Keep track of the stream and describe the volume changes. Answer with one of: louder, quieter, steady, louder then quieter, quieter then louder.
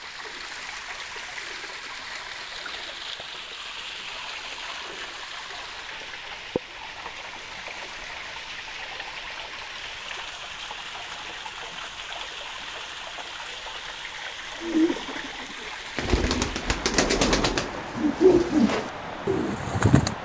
steady.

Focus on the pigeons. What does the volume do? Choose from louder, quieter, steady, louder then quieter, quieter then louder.
louder then quieter.